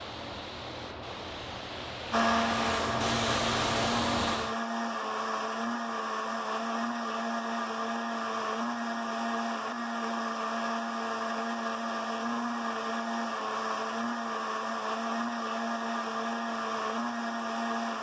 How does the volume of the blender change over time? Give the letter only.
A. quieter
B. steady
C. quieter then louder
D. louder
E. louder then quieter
B.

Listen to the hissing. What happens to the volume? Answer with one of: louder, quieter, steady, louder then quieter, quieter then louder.
louder.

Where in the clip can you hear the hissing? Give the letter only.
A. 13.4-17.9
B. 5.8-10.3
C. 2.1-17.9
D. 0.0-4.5
D.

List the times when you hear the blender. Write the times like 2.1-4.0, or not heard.
2.1-17.9.